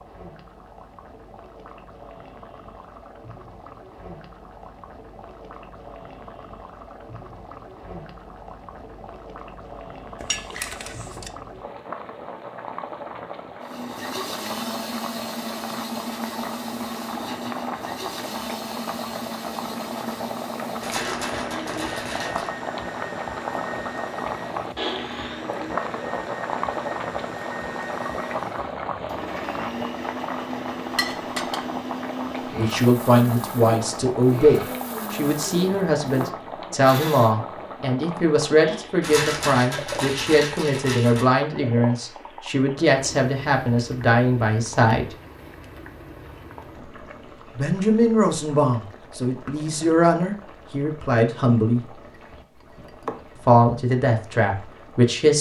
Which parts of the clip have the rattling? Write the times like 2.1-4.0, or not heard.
20.8-22.5, 39.0-41.2.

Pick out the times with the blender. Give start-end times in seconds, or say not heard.
13.6-37.4.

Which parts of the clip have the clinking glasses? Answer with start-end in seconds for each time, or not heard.
10.2-11.3, 30.9-31.6, 52.1-53.4.